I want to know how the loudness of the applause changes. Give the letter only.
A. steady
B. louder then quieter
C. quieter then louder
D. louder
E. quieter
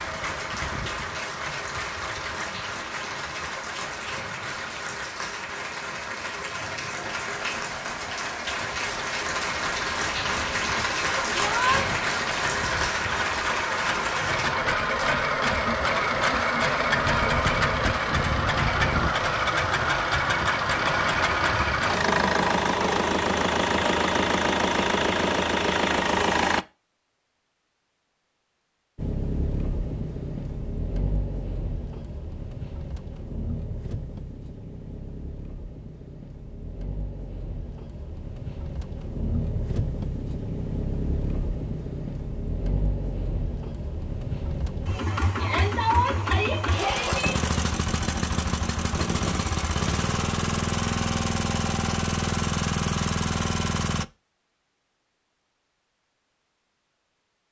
D.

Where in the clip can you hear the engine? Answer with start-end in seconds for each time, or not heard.
0.0-26.6, 28.9-54.0.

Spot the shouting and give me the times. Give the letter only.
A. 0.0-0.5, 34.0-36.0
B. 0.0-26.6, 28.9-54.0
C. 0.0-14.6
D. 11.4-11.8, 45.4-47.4
D.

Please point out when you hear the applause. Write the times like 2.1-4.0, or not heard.
0.0-14.6.